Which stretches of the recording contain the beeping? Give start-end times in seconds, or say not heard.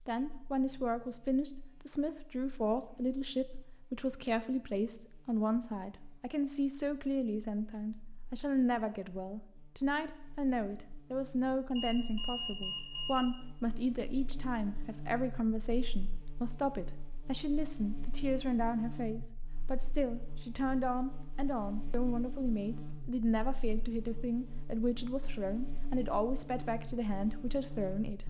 11.8-13.2.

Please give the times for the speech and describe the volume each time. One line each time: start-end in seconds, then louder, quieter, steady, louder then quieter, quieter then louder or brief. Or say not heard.
0.1-28.2 steady.